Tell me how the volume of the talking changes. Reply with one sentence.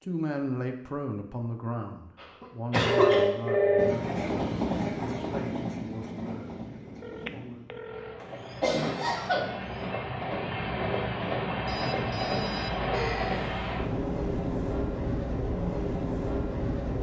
The volume of the talking goes down.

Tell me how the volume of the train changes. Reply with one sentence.
The volume of the train goes down, then up.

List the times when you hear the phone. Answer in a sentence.
The phone can be heard from 2.9 to 4.1 s, from 7.0 to 8.2 s and from 11.7 to 13.7 s.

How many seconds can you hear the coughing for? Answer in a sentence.
You can hear the coughing for 3 seconds altogether.